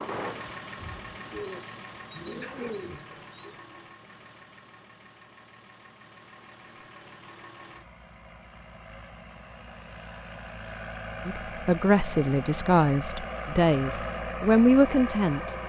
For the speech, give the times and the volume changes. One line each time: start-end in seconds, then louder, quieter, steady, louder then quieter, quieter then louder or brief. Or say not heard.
11.2-15.6 quieter then louder.